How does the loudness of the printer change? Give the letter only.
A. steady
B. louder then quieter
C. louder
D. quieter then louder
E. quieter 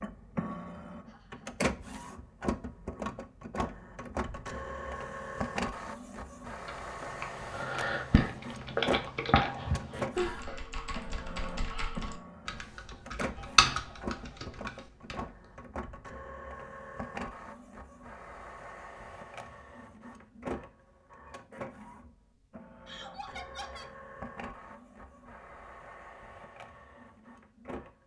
E.